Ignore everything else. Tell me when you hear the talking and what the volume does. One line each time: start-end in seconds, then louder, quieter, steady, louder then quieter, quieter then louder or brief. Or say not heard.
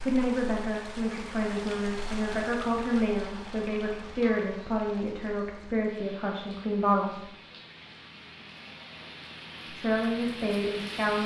0.0-7.3 steady
9.7-11.2 brief.